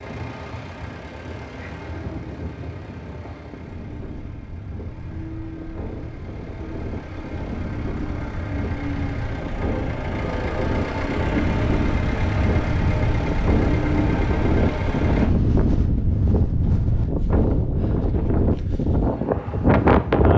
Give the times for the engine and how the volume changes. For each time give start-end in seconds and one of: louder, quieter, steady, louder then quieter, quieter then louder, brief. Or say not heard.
0.0-15.3 louder.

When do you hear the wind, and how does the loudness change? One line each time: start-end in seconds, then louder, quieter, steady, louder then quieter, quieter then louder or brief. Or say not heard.
0.0-20.3 louder.